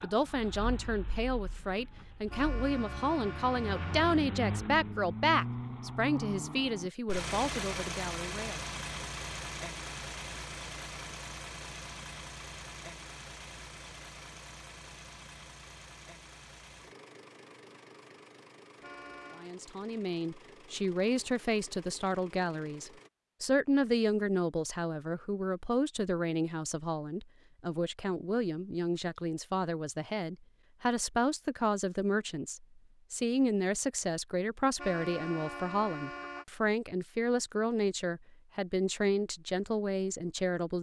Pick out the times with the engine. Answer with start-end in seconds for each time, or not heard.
0.0-23.1.